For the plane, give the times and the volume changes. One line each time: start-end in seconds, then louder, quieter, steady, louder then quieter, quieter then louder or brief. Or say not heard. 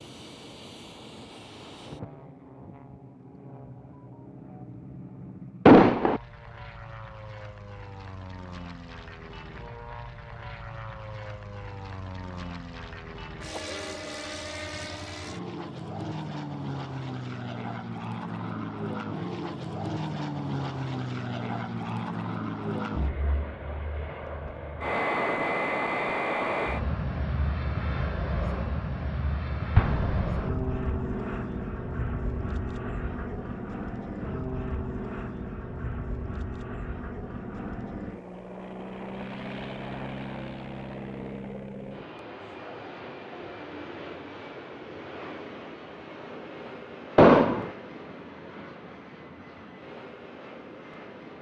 0.0-51.3 louder then quieter.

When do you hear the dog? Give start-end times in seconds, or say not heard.
not heard.